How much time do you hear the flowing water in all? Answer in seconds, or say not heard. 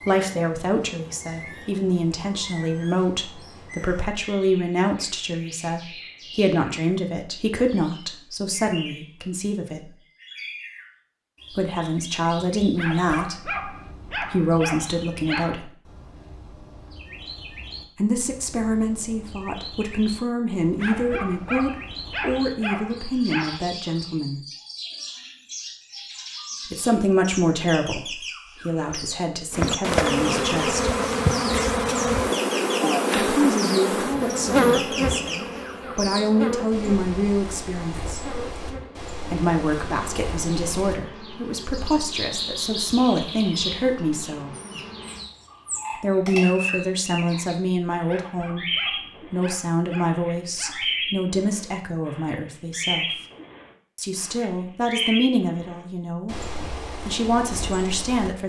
not heard.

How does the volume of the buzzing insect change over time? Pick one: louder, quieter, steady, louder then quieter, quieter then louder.
quieter.